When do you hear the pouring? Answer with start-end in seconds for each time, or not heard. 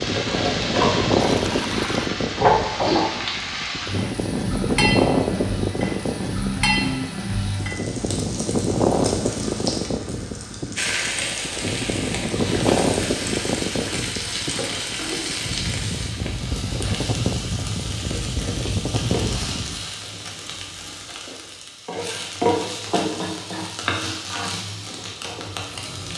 1.2-2.1.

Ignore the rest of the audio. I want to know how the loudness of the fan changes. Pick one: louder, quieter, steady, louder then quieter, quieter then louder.
steady.